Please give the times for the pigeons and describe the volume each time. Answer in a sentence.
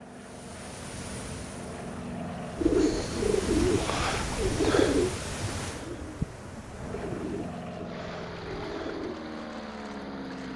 The pigeons can be heard from 2.5 to 9.2 s, getting quieter.